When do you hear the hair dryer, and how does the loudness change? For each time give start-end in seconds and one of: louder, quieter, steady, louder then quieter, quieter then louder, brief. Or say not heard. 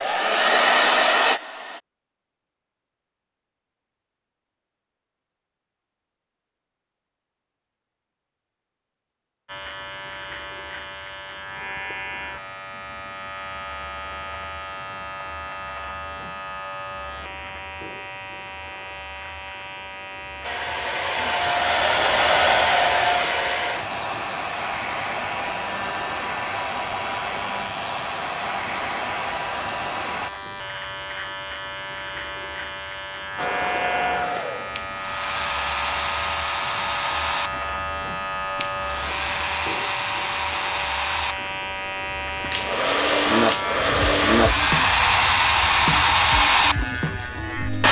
0.0-1.8 brief
20.4-30.3 quieter
33.4-47.8 louder.